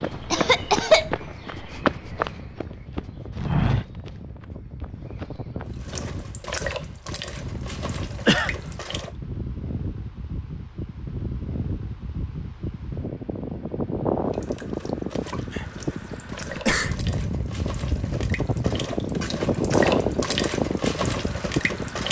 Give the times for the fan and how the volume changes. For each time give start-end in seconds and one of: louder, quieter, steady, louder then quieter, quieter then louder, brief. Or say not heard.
0.0-22.0 louder.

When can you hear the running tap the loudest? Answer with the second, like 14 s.
20 s.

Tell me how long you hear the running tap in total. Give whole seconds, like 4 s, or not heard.
11 s.